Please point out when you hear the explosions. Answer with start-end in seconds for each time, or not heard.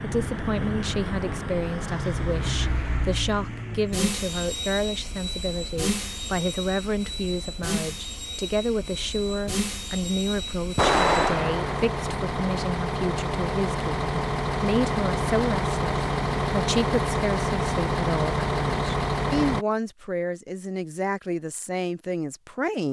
10.8-11.8.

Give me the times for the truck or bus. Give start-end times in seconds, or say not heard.
0.0-19.6.